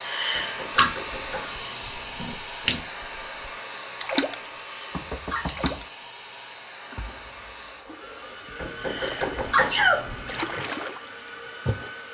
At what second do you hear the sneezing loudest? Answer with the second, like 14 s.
10 s.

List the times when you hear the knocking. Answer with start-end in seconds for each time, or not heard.
0.3-2.4, 4.9-5.8, 8.6-10.6.